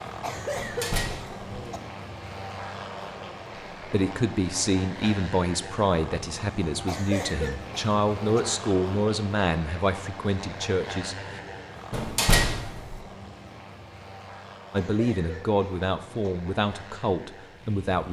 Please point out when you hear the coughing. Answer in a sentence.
The coughing can be heard from 0.2 to 1.8 s, from 6.8 to 8.4 s and from 14.8 to 16.3 s.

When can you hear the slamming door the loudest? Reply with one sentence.
The loudest moment of the slamming door is at 12 seconds.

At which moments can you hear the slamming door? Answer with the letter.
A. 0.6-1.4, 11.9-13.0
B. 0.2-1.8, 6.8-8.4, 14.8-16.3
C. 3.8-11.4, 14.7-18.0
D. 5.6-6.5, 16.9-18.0
A.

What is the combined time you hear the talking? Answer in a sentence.
You can hear the talking for 11 seconds altogether.